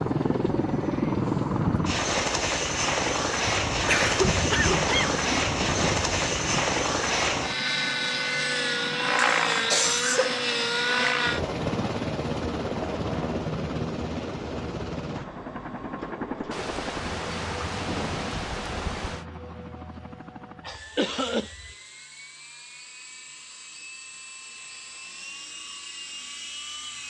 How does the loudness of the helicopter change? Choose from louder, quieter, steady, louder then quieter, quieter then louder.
quieter.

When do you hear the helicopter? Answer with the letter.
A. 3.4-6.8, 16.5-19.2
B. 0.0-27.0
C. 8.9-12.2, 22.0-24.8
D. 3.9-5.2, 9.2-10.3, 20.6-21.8
B.